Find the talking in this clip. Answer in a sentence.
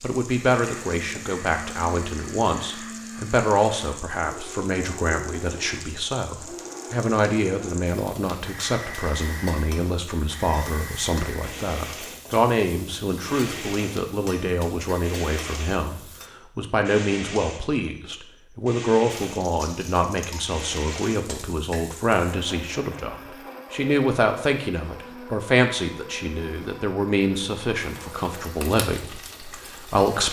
You can hear the talking from 0.0 to 30.2 s.